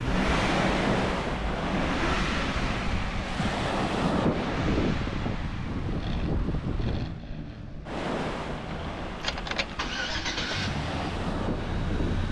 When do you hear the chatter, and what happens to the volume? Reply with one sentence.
You can't hear the chatter here.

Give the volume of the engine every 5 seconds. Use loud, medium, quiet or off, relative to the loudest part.
loud, medium, loud.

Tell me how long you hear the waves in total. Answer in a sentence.
The waves can be heard for 12 seconds in total.